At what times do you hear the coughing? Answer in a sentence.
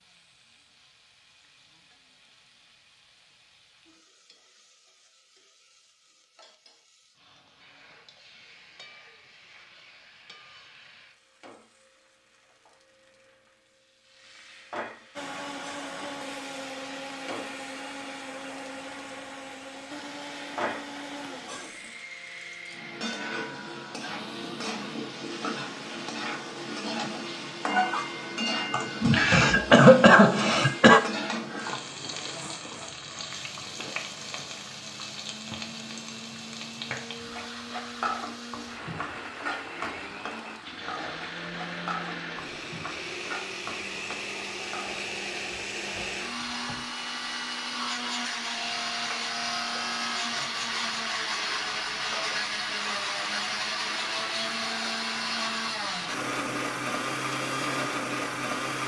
The coughing can be heard from 28.7 to 31.0 s.